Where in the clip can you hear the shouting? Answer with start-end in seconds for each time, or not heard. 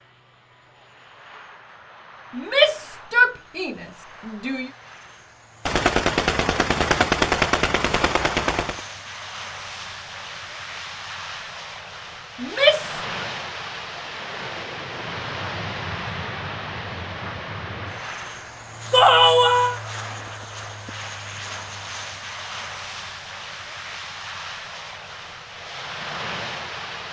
2.4-4.7, 12.4-13.0, 18.9-19.8.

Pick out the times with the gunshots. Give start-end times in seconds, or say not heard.
5.7-8.8.